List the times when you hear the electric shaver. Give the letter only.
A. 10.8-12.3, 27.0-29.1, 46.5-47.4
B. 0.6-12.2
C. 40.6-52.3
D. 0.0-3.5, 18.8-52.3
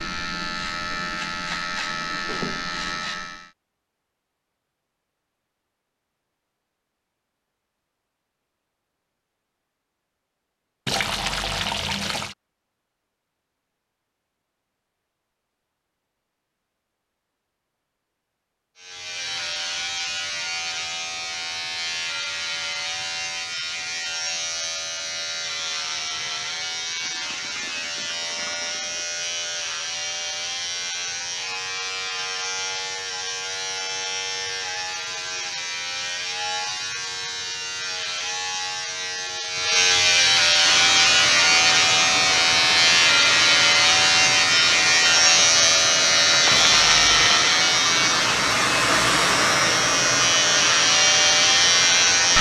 D.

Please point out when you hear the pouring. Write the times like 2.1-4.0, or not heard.
10.8-12.3, 27.0-29.1, 46.5-47.4.